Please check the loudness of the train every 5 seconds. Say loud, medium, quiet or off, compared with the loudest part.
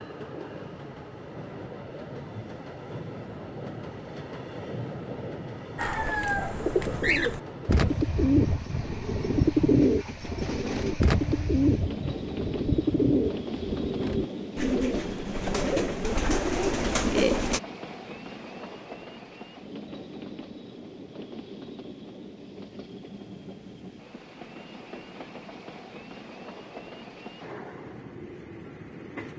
loud, loud, loud, loud, medium, medium.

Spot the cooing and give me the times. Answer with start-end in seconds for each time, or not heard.
5.8-17.6.